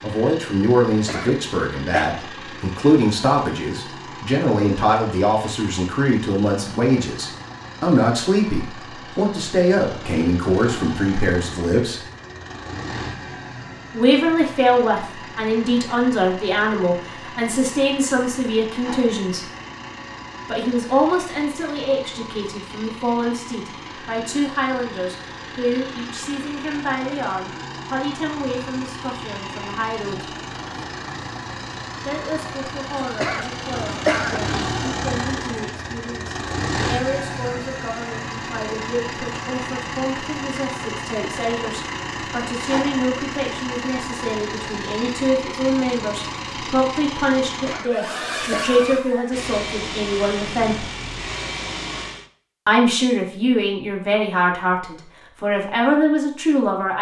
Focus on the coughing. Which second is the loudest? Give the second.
34 s.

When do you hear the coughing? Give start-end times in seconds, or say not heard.
0.8-2.1, 33.0-34.5, 47.5-48.9.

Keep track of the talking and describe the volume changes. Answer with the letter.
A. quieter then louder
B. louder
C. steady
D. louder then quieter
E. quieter
A.